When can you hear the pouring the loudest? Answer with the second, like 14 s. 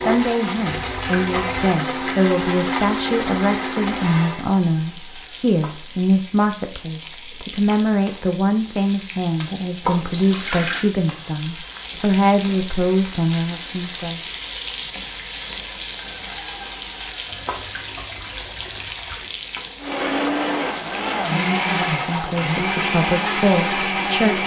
10 s.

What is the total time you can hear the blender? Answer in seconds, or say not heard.
9 s.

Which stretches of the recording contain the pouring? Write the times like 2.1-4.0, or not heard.
0.7-1.8, 9.8-10.8, 17.2-19.4.